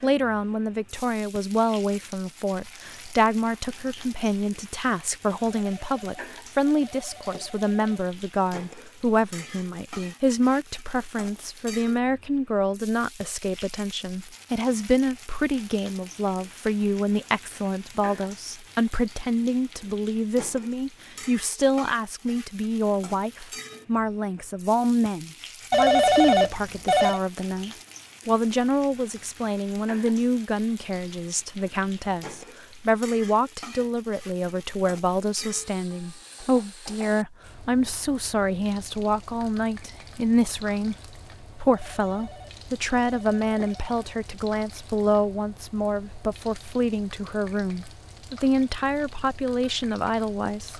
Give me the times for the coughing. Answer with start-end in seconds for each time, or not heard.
not heard.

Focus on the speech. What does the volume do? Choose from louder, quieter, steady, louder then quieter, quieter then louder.
steady.